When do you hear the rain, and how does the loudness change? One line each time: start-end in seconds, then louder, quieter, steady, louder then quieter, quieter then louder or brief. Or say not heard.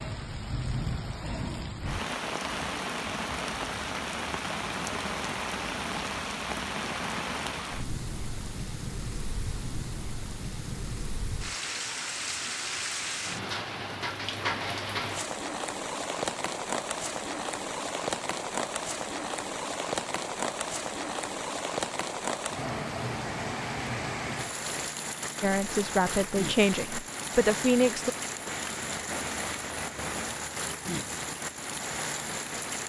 0.0-32.8 steady.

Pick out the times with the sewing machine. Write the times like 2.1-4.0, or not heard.
not heard.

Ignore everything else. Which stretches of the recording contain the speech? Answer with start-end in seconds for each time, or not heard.
25.4-28.1.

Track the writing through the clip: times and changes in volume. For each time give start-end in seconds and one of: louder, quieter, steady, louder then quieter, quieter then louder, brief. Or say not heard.
not heard.